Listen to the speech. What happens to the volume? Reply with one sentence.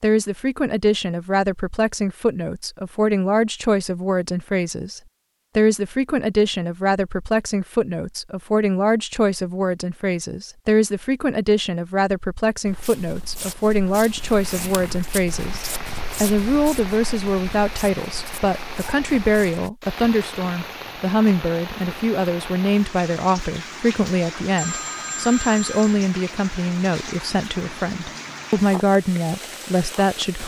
The loudness of the speech stays about the same.